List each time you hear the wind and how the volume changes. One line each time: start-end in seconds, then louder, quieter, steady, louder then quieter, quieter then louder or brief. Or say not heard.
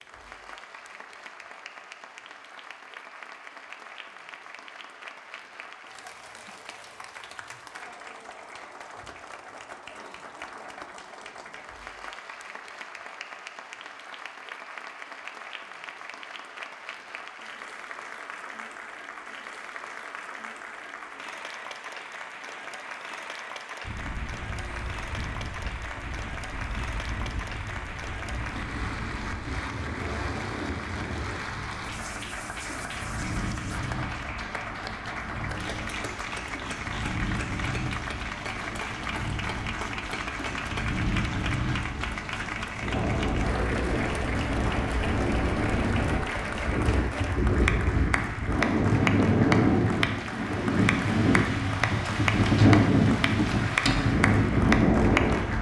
23.8-55.5 louder.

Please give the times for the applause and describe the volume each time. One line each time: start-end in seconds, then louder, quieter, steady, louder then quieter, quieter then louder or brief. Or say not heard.
0.0-55.5 louder.